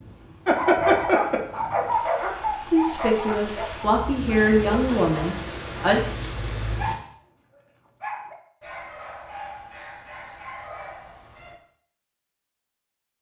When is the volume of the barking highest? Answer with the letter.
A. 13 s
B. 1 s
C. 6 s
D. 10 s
B.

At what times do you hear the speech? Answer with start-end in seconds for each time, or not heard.
2.7-6.0.